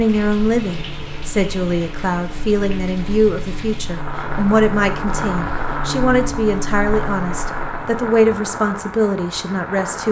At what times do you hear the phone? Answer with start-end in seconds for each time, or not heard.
not heard.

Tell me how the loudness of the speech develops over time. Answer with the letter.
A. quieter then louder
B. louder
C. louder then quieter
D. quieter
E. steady
E.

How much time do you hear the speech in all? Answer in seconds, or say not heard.
10 s.